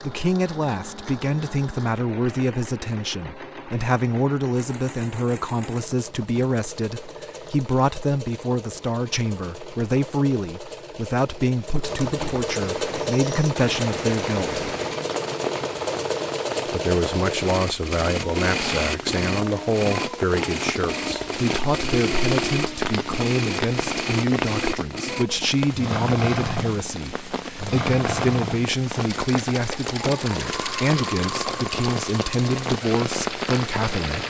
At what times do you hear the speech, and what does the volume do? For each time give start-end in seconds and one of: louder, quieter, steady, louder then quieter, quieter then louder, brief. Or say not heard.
0.0-14.7 steady
16.6-34.2 steady.